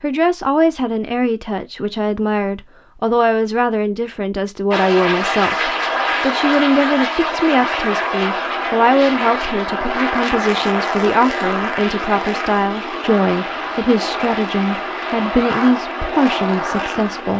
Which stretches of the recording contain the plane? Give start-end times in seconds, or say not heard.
4.7-17.3.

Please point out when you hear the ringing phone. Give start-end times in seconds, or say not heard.
not heard.